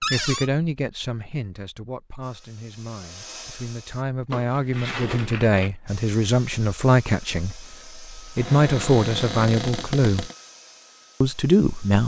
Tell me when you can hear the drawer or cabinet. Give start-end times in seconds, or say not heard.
0.0-0.5, 4.3-5.7, 8.3-10.3.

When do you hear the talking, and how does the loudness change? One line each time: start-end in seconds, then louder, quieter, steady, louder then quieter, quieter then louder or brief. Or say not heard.
0.0-10.3 quieter then louder
11.2-12.0 brief.